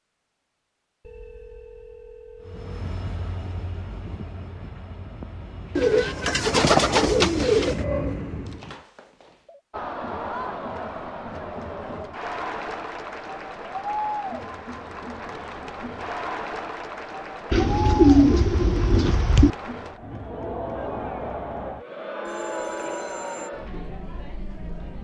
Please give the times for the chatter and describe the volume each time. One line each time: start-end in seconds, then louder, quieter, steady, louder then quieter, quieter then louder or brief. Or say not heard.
9.7-24.9 steady.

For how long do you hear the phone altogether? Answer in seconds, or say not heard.
4 s.